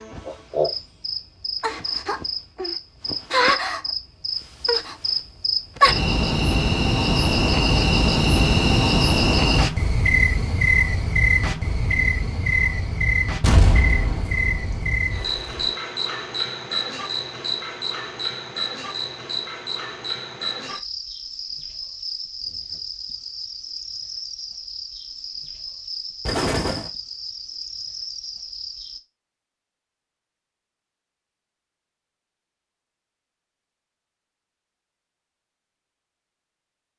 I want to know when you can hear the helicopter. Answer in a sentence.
You can't hear the helicopter here.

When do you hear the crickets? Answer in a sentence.
You can hear the crickets from 0.0 to 29.0 s.